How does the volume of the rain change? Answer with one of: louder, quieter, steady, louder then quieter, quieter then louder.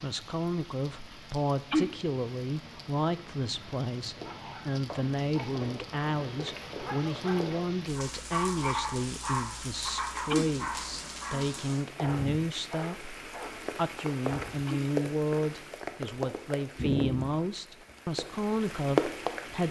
louder.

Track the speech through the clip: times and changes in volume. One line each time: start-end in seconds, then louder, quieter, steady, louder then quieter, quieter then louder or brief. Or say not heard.
0.0-19.6 steady.